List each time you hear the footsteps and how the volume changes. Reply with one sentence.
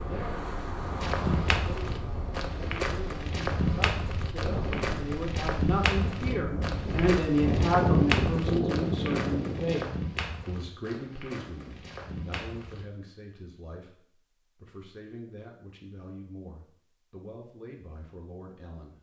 You can hear the footsteps from 1.0 to 12.8 s, getting quieter.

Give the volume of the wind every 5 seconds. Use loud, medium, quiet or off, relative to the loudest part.
medium, loud, off, off.